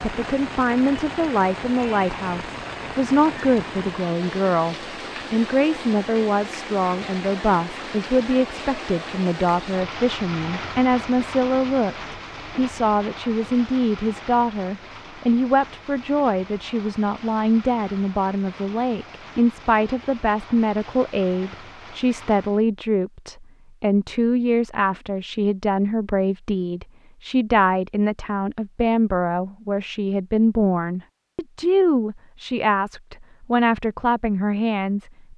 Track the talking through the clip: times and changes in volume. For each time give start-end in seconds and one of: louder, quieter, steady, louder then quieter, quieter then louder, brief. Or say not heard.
0.0-35.3 steady.